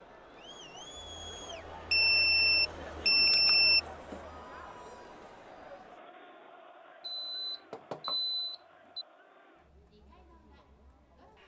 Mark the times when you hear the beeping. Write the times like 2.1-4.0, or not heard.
1.9-3.8, 7.0-9.1.